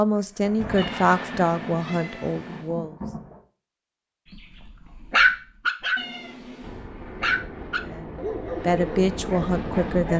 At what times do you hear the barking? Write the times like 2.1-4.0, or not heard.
5.0-10.1.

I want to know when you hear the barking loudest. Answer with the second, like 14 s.
5 s.